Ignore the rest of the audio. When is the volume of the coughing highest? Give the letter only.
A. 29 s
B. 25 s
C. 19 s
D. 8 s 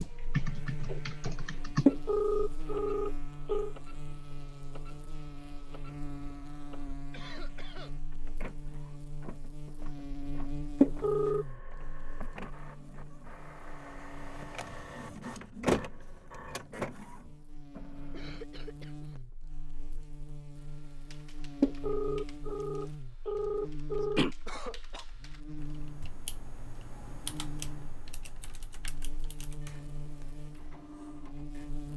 B.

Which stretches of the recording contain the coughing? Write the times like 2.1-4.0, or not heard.
7.1-8.0, 18.1-19.2, 24.0-25.1.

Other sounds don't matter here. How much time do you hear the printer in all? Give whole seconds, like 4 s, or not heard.
22 s.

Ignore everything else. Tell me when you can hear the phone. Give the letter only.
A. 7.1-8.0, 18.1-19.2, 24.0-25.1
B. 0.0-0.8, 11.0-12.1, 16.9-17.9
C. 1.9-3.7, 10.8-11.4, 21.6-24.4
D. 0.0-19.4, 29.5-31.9
C.